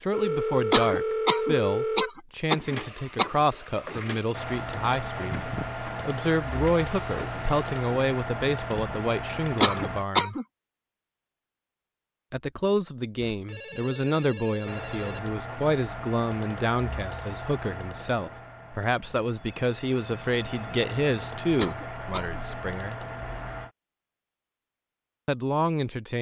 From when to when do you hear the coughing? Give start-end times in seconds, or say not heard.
0.7-3.3, 9.6-10.4, 21.6-22.4.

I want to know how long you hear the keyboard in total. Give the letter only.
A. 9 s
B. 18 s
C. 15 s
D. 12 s
C.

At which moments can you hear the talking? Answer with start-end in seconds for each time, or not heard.
0.0-10.3, 12.3-23.0, 25.2-26.1.